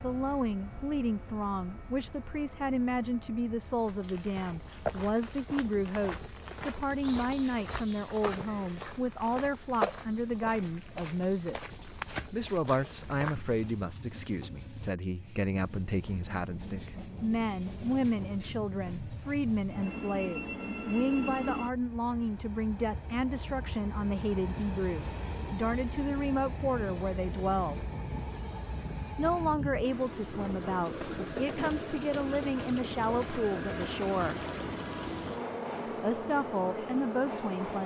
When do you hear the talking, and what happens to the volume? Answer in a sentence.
You can hear the talking from 0.0 to 27.9 s, at a steady volume; from 29.1 to 34.4 s, at a steady volume; and briefly from 36.0 to 37.8 s.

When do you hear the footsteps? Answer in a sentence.
The footsteps can be heard from 3.8 to 13.8 s.